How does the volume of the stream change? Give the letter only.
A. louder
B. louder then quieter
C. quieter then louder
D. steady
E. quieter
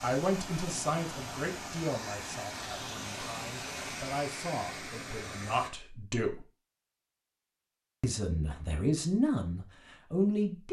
D.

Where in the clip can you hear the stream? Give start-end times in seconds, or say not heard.
0.0-5.7.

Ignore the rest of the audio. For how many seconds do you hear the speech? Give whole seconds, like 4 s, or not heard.
9 s.